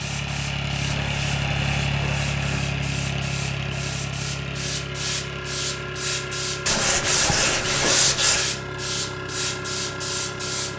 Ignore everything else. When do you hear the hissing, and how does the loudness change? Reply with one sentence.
The hissing can be heard from 0.0 to 10.7 s, getting louder.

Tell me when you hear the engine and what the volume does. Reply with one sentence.
The engine can be heard from 0.0 to 10.7 s, getting quieter.